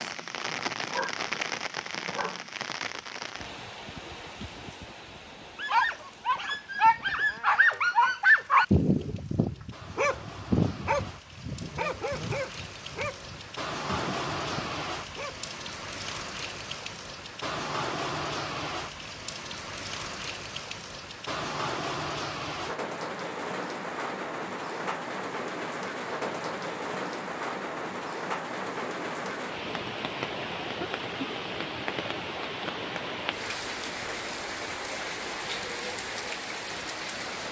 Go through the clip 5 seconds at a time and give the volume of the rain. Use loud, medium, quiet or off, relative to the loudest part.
loud, quiet, loud, loud, loud, loud, loud, loud.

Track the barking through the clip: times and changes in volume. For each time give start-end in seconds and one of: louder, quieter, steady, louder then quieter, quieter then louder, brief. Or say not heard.
0.0-2.5 brief
5.5-15.4 quieter.